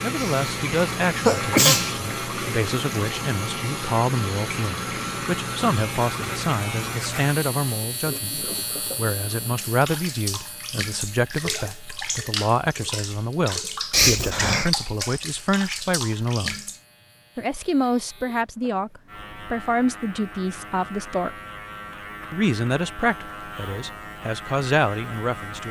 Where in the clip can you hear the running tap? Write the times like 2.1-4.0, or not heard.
0.0-16.8.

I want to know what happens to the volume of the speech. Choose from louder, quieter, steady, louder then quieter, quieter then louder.
steady.